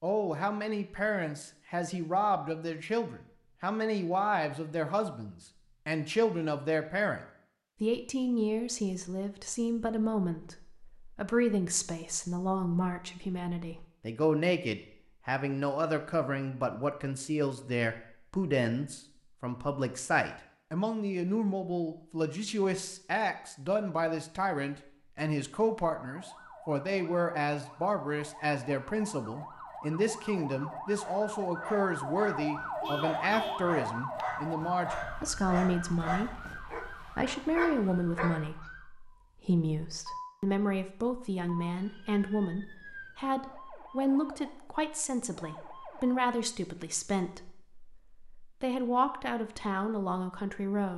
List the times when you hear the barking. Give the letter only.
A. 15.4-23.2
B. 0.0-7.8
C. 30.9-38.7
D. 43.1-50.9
C.